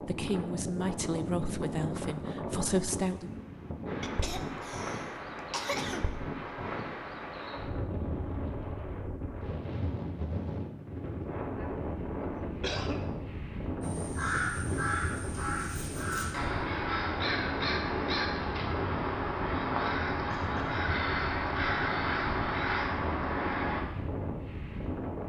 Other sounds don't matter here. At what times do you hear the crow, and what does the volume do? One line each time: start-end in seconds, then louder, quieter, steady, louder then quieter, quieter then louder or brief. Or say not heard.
13.8-23.9 steady.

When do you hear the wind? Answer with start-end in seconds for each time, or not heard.
0.0-25.2.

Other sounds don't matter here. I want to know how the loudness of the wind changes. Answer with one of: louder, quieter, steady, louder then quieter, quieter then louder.
steady.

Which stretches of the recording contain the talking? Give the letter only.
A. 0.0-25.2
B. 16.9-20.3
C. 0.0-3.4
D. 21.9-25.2
C.